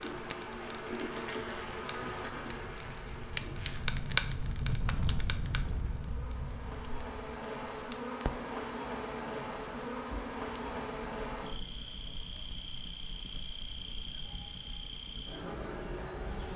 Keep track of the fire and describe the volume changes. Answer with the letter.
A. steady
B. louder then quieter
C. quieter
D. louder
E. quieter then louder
B.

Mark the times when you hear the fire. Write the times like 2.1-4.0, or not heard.
0.0-16.5.